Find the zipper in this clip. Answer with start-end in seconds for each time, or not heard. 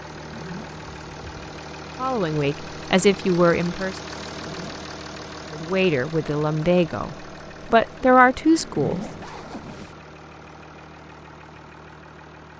0.2-0.8, 4.4-4.8, 8.6-9.9.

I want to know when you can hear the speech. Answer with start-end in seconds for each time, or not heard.
1.9-4.0, 5.5-9.1.